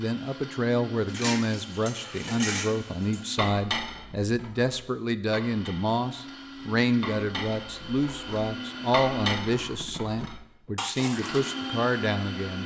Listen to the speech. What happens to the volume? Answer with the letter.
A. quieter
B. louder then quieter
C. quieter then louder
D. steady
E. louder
D.